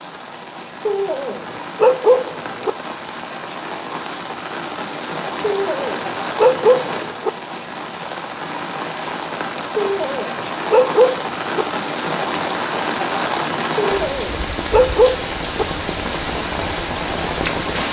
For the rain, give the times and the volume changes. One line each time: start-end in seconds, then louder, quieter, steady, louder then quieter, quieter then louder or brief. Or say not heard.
0.0-17.8 louder.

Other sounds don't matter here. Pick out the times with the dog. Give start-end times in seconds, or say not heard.
0.8-2.7, 5.4-7.3, 9.8-11.7, 13.8-15.7.